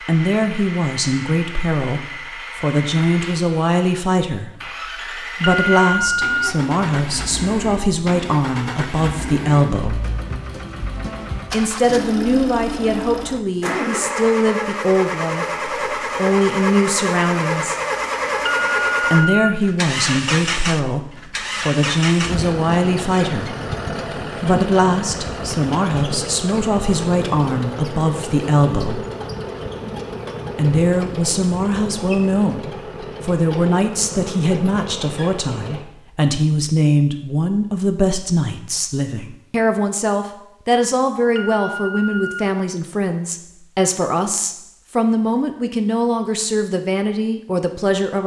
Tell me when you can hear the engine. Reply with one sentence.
You can hear the engine from 0.0 to 35.9 s.